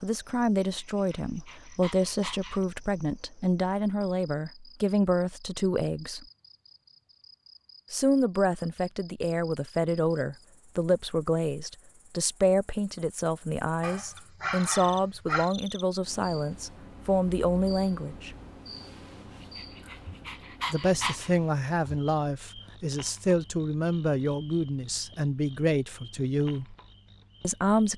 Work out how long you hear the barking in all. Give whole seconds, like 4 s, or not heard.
6 s.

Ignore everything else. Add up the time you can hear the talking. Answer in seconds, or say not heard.
23 s.